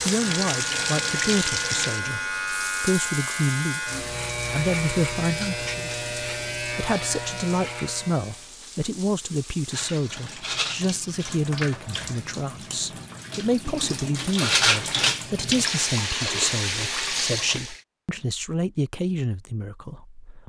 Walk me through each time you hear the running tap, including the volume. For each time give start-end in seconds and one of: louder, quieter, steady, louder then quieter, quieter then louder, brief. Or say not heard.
0.0-17.8 quieter then louder.